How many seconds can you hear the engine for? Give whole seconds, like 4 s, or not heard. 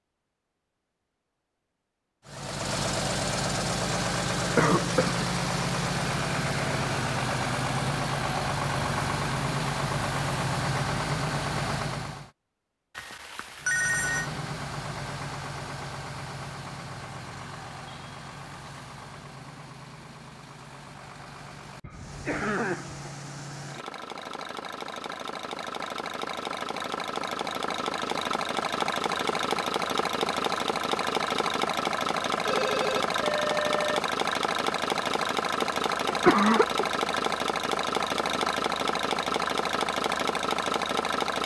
38 s.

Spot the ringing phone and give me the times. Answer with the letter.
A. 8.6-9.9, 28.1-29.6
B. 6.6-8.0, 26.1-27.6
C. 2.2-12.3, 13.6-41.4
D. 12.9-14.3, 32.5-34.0
D.